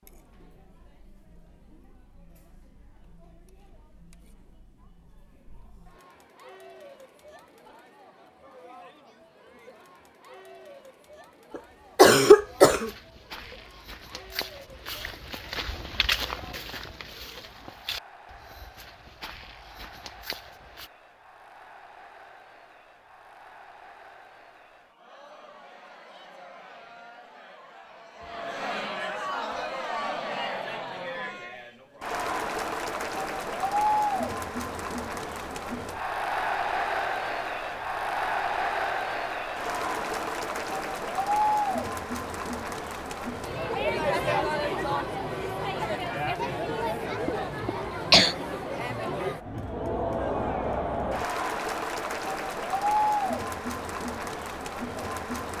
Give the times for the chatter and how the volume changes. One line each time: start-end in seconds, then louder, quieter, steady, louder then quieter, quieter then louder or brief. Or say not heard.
0.0-55.5 louder.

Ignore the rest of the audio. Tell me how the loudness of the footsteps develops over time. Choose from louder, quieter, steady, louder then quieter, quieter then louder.
louder then quieter.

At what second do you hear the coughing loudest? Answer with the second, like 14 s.
12 s.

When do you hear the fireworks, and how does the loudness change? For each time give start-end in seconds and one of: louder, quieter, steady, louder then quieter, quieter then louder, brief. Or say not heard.
not heard.